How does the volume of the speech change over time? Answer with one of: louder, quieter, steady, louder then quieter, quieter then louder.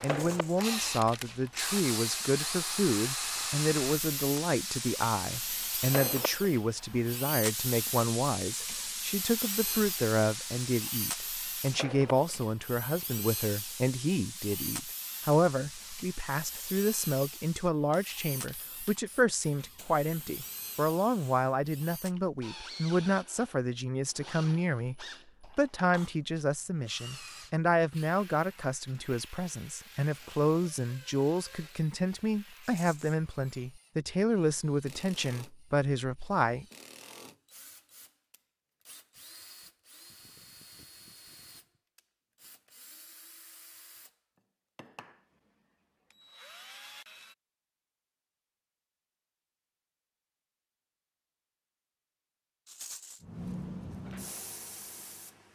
steady.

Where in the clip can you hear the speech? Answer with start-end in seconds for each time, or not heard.
0.0-36.6.